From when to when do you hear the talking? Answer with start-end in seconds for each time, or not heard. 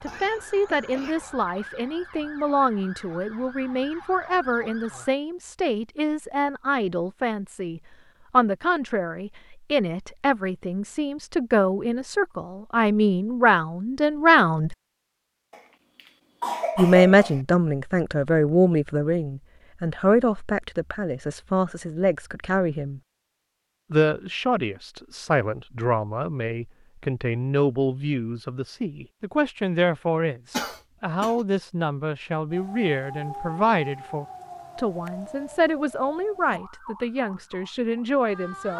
0.0-14.8, 16.8-23.0, 23.9-38.7.